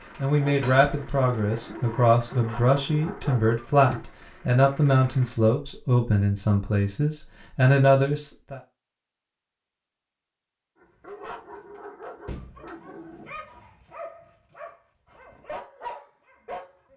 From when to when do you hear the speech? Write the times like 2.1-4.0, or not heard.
0.2-8.6.